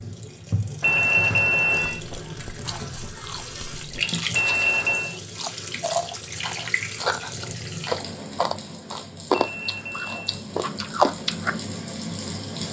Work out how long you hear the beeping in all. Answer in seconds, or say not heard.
3 s.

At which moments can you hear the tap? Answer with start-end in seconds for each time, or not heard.
0.0-12.6.